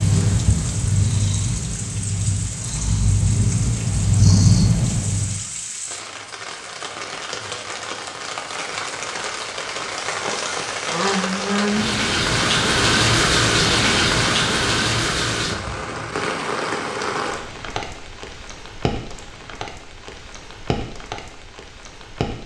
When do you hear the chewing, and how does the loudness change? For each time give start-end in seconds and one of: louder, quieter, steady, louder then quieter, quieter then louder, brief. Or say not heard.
not heard.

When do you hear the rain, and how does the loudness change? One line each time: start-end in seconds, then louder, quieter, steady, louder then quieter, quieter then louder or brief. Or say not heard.
0.0-22.4 louder then quieter.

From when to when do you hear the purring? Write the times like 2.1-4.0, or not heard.
0.0-5.4.